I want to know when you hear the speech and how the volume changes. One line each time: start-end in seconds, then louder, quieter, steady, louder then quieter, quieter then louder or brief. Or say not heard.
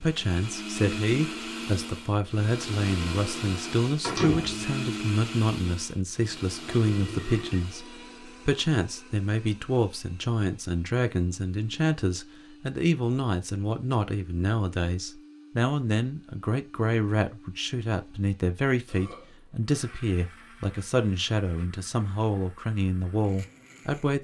0.0-7.8 steady
8.4-24.1 steady.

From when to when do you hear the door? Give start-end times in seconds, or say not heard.
4.0-4.7.